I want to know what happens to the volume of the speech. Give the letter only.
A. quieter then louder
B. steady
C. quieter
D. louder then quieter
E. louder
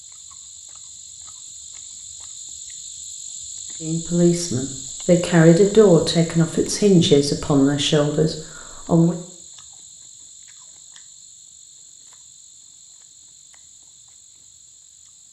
D.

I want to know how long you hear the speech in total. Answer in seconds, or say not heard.
5 s.